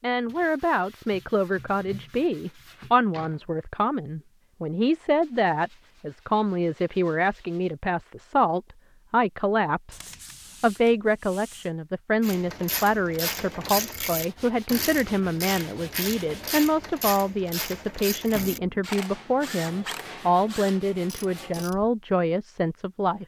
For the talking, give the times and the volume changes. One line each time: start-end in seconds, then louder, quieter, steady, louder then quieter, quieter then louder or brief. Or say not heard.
0.0-10.0 steady
10.6-23.2 steady.